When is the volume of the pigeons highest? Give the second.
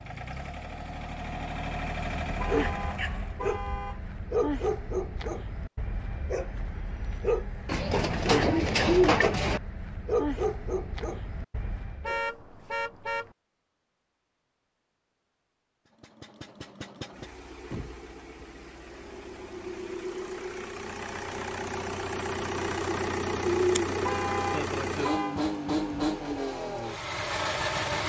9 s.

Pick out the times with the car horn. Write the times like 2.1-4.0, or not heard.
2.4-4.0, 12.0-13.3, 24.0-25.4.